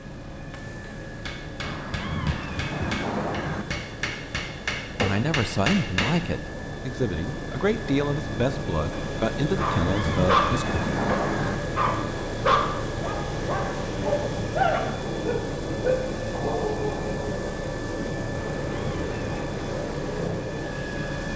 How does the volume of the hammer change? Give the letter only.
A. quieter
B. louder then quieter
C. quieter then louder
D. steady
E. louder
E.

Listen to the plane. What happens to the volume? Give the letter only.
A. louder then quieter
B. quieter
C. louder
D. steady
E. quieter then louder
C.